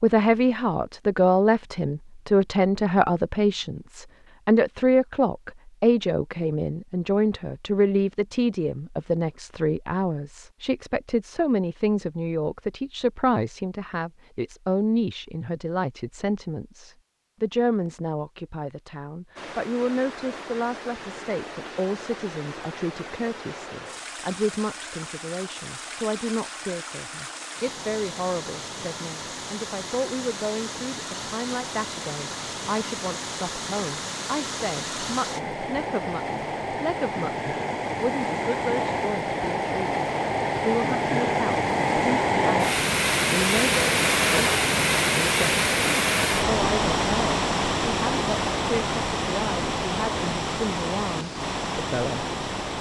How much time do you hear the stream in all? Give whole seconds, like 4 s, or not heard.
33 s.